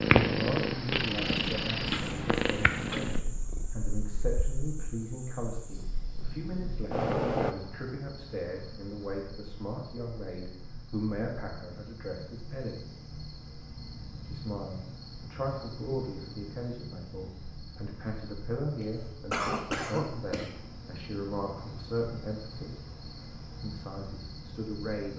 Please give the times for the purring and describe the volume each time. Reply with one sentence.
The purring can be heard from 0.0 to 7.5 s, getting quieter then louder.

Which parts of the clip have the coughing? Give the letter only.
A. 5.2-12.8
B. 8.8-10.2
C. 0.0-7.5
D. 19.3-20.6
D.